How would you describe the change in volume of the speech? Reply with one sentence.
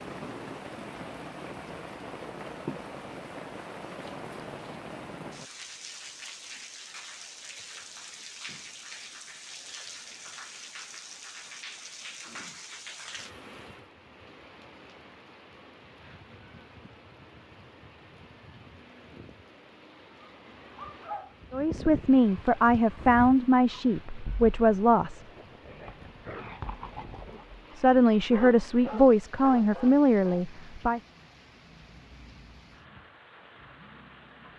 The volume of the speech stays about the same.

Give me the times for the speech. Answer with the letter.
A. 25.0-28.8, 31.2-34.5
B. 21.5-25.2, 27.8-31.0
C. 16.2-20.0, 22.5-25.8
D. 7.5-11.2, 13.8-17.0
B.